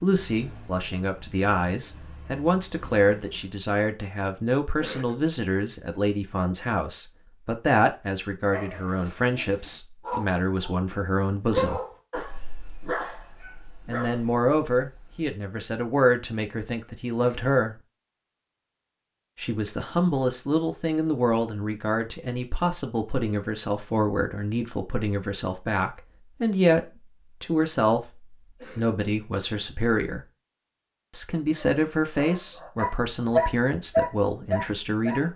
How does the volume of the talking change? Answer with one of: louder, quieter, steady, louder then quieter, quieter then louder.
steady.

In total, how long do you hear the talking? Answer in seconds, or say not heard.
31 s.